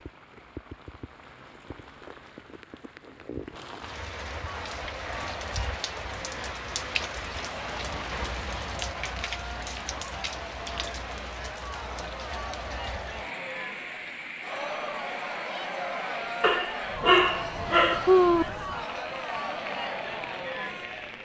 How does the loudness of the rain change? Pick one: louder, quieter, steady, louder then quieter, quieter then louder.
louder then quieter.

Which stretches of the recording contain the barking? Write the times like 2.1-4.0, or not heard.
16.4-18.4.